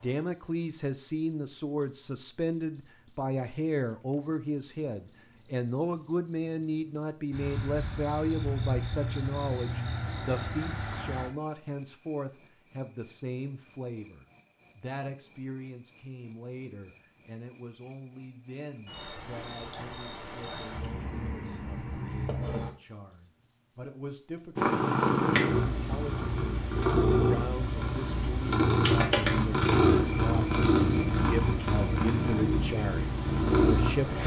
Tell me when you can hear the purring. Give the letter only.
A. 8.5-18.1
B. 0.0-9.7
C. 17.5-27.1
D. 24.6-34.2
D.